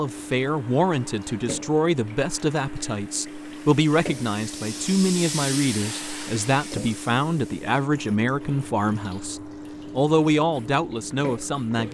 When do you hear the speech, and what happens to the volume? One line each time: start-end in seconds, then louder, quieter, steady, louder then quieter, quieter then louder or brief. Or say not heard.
0.0-11.8 steady.